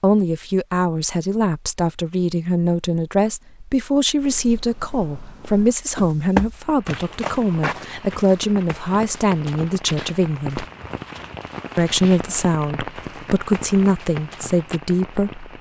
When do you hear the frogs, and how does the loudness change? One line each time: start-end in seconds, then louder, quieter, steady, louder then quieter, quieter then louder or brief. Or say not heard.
not heard.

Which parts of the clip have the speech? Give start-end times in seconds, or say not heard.
0.0-10.7, 11.8-15.4.